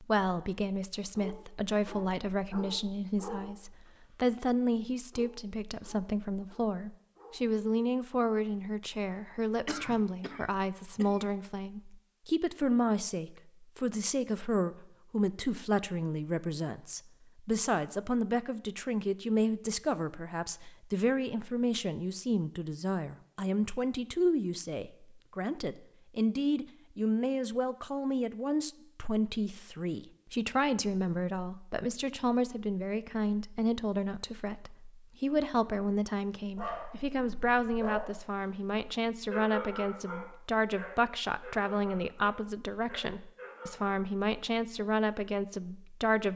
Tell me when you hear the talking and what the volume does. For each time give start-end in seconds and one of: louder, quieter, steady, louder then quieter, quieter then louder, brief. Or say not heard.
0.0-46.3 steady.